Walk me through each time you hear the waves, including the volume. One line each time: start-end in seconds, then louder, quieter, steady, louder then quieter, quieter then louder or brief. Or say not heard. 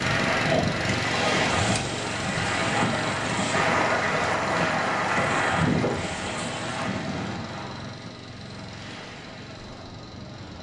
0.0-10.5 quieter.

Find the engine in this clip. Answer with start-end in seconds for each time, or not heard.
0.0-10.5.